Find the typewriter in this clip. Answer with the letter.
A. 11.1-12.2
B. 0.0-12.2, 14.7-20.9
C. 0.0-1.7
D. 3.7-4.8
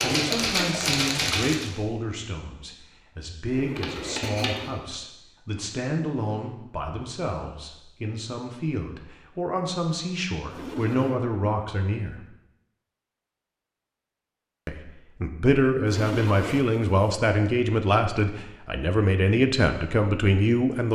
C.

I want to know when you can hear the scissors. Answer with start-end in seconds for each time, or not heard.
3.7-4.8.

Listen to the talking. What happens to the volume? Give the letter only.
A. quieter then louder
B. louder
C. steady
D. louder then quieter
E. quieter
B.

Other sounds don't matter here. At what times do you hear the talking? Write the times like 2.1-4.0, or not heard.
0.0-12.2, 14.7-20.9.